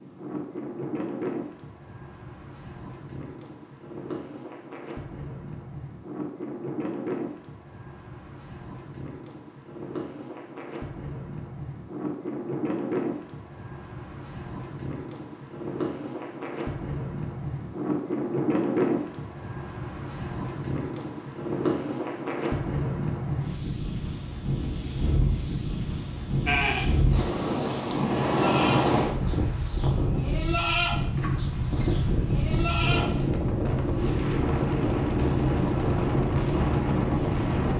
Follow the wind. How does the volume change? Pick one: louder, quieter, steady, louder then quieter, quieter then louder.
louder.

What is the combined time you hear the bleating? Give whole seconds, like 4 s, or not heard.
7 s.